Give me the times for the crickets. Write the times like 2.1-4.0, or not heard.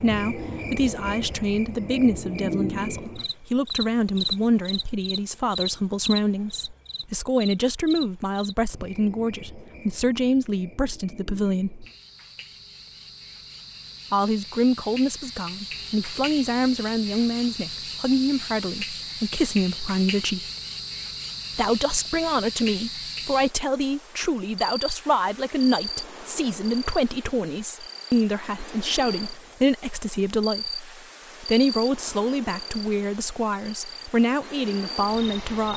0.0-35.7.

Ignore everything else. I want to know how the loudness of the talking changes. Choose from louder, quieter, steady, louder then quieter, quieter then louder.
steady.